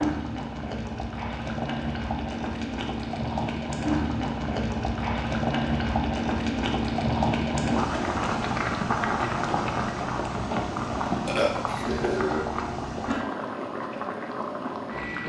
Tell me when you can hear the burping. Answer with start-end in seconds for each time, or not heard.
11.2-12.6.